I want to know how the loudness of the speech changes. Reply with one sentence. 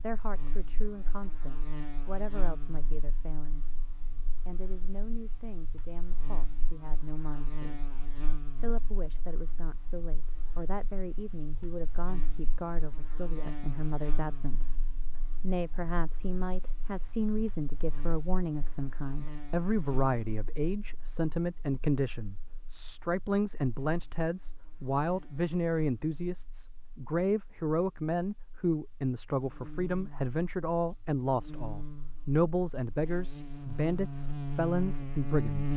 The loudness of the speech goes up.